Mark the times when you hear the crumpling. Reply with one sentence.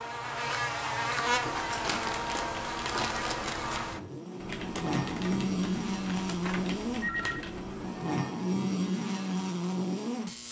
You can hear the crumpling from 1.8 to 3.8 s.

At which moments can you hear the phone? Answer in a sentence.
You can hear the phone from 6.3 to 7.5 s.